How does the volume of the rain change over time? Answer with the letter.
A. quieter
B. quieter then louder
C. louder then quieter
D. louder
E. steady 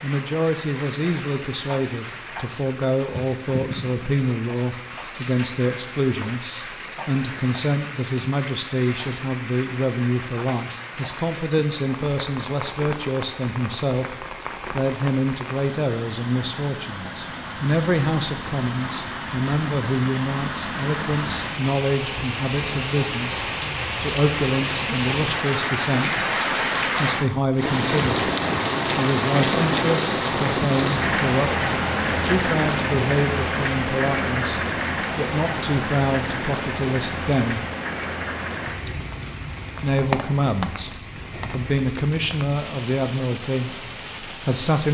C.